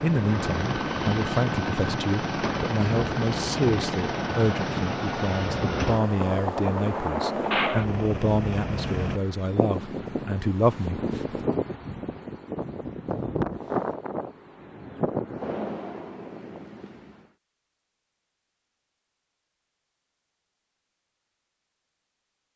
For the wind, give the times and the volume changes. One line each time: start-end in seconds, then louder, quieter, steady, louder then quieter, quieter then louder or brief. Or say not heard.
0.0-17.2 steady.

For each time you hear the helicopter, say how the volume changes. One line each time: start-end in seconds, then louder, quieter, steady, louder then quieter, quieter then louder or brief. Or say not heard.
0.0-9.2 steady.